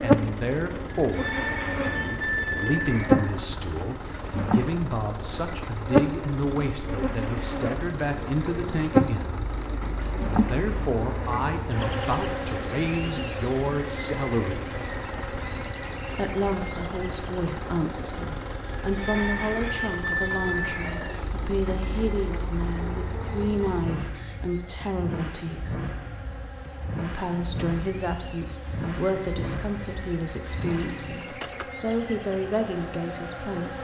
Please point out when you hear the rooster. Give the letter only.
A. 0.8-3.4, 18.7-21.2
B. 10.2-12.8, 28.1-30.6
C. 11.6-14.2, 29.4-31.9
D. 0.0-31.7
A.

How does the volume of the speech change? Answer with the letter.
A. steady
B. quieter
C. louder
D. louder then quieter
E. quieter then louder
A.